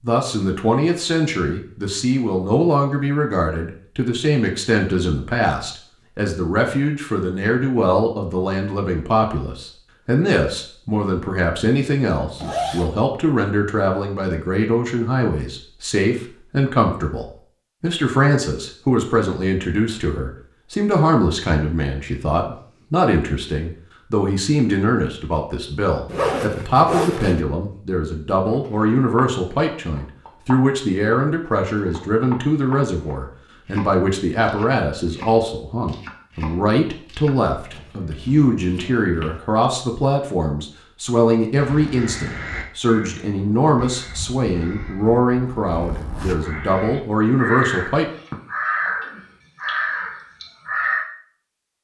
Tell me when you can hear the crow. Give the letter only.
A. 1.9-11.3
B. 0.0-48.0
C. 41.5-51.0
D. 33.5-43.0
C.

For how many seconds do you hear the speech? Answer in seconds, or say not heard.
48 s.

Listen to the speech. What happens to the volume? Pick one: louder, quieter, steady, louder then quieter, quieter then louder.
steady.